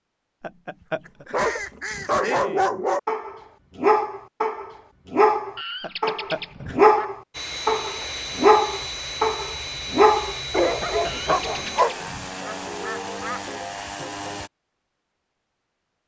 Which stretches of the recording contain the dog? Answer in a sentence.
The dog can be heard from 1.3 to 11.9 s.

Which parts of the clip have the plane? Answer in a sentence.
The plane can be heard from 7.3 to 14.5 s.